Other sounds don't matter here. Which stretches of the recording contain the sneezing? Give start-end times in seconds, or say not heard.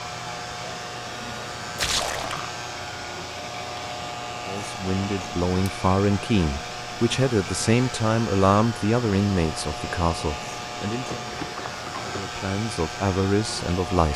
not heard.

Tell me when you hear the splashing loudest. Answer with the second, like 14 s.
2 s.